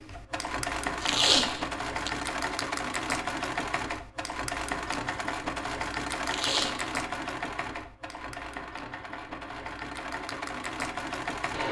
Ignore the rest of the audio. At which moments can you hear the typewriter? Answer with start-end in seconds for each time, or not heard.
not heard.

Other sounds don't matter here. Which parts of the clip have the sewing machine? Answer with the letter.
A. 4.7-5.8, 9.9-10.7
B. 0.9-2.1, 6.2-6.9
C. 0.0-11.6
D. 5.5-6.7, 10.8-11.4
C.